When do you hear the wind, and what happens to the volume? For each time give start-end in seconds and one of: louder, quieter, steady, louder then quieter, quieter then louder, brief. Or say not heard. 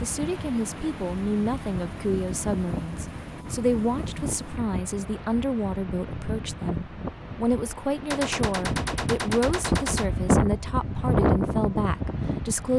0.0-12.7 louder.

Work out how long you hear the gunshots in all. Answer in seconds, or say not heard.
2 s.